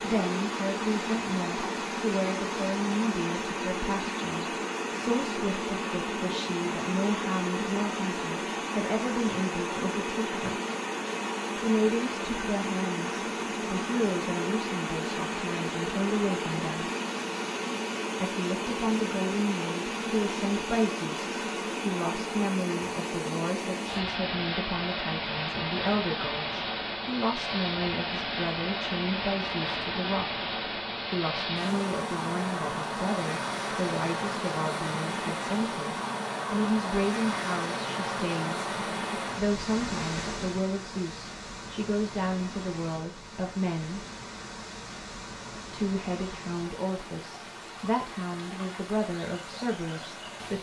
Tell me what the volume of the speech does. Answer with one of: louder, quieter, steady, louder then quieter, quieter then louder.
steady.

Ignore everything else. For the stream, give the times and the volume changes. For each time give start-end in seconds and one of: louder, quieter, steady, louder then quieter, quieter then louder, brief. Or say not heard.
0.0-50.5 quieter.